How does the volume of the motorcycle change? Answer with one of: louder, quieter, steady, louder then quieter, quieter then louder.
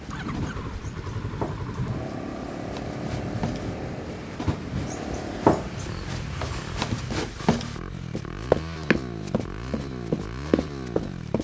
steady.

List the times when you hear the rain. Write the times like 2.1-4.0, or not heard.
0.0-7.3.